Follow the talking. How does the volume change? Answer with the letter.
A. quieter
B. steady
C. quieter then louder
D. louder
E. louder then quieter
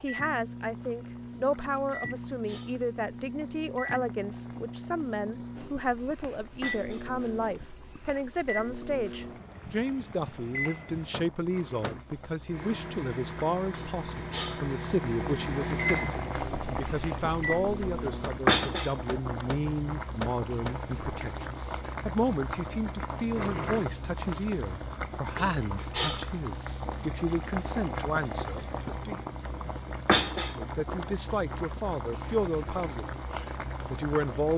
B.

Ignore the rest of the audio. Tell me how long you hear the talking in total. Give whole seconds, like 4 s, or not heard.
33 s.